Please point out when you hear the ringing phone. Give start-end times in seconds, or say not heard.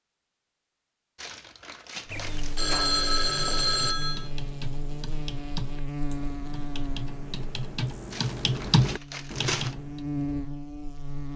2.1-4.3.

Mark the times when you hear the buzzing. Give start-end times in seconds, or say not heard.
2.1-11.3.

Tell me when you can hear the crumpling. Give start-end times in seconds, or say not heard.
1.1-2.6, 8.1-9.8.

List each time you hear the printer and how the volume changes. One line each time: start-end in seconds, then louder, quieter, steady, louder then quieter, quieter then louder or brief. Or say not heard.
not heard.